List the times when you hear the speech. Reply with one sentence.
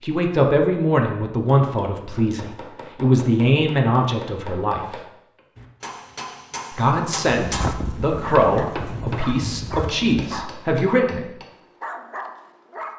The speech can be heard from 0.0 to 5.0 s and from 6.7 to 11.2 s.